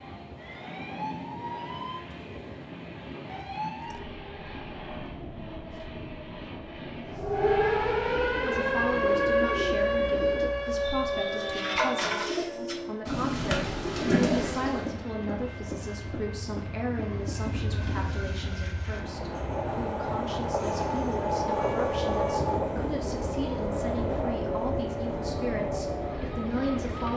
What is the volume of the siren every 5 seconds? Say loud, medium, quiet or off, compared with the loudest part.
quiet, loud, loud, off, medium, medium.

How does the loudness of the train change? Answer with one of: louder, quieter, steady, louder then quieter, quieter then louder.
louder.